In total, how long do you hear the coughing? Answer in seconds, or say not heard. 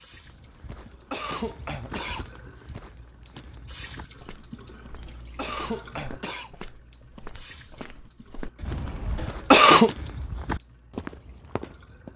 5 s.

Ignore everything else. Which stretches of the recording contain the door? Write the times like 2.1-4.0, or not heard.
not heard.